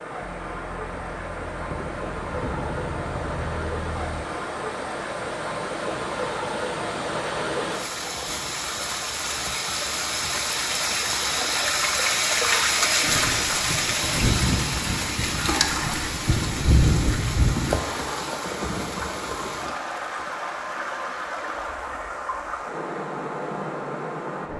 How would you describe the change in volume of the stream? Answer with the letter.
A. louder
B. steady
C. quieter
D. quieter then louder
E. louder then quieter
E.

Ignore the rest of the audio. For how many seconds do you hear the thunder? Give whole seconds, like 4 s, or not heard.
9 s.